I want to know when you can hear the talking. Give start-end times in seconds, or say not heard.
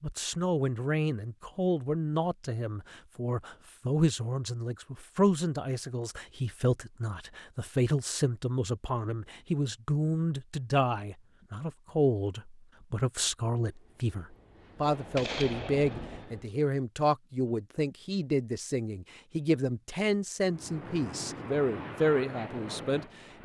0.0-23.4.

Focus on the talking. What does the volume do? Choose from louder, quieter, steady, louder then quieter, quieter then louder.
steady.